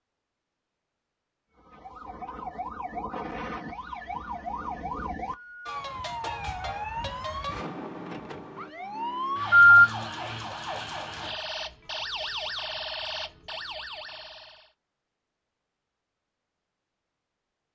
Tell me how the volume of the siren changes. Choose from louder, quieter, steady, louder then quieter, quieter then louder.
steady.